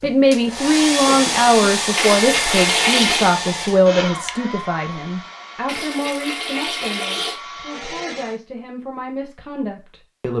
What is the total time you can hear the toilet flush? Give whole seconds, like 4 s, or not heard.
3 s.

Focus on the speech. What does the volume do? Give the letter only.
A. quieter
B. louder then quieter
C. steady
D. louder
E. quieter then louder
A.